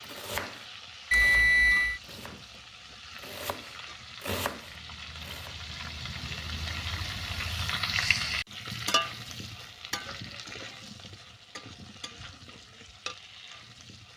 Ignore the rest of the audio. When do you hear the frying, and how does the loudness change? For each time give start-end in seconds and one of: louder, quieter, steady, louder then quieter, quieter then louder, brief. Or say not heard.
0.0-14.1 louder then quieter.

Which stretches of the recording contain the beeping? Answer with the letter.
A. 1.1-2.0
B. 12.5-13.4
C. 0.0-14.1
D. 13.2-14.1
A.